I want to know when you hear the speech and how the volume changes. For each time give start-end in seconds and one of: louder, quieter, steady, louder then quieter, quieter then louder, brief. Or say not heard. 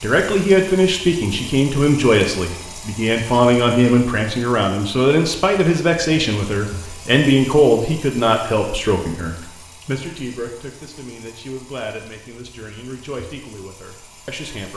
0.0-14.7 quieter.